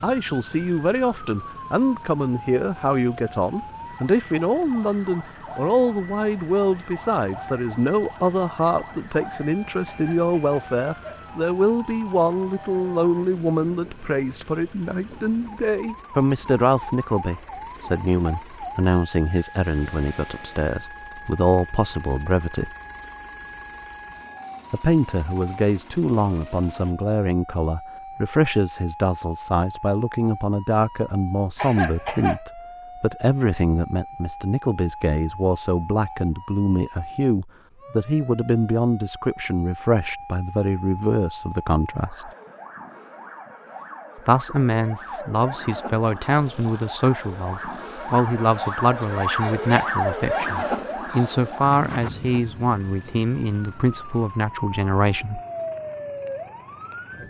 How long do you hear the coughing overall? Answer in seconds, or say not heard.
2 s.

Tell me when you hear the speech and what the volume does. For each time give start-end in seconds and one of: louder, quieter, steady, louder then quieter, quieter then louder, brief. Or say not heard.
0.0-22.7 steady
24.7-42.3 steady
44.1-55.4 steady.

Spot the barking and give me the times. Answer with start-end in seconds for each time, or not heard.
not heard.